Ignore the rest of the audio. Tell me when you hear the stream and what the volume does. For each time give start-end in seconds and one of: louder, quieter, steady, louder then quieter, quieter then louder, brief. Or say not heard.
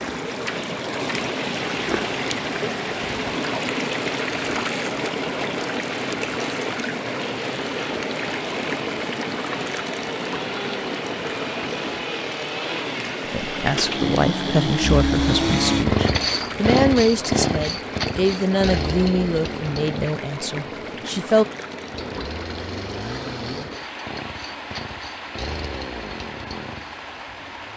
0.0-27.7 quieter.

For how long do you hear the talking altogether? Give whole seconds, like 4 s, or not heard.
8 s.